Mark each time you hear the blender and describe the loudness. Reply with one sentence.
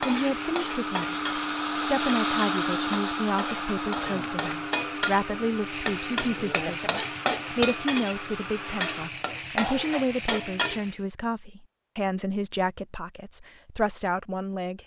You can hear the blender from 0.0 to 9.2 s, getting quieter.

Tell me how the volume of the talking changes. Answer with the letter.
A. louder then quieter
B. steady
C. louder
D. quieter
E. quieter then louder
B.